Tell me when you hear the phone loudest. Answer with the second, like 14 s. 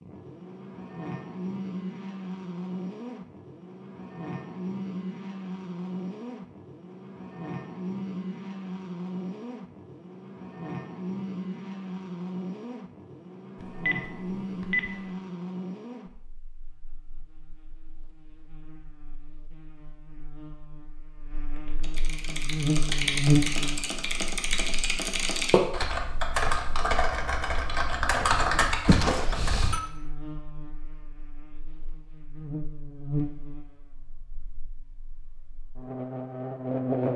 29 s.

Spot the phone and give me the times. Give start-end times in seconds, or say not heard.
13.6-14.9, 28.9-29.8.